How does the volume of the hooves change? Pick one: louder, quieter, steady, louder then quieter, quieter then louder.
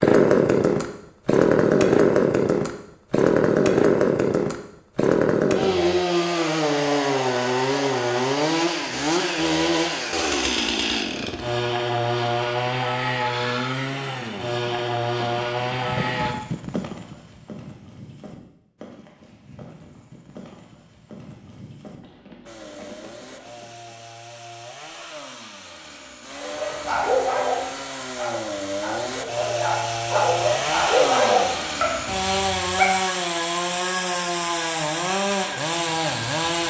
quieter.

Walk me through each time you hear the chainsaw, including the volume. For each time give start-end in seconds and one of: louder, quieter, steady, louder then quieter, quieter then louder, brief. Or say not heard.
0.0-16.4 quieter
22.4-36.6 louder.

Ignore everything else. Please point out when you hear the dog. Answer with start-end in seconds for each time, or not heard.
26.4-32.9.